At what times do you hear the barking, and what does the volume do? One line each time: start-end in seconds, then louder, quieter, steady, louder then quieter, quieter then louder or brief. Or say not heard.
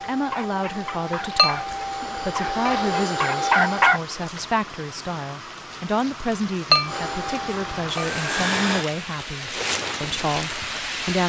0.1-4.5 louder.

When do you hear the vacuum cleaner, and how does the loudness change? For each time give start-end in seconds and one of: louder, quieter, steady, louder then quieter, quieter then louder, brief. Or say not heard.
0.0-4.0 louder
6.8-8.8 brief.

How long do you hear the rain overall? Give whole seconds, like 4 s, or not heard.
11 s.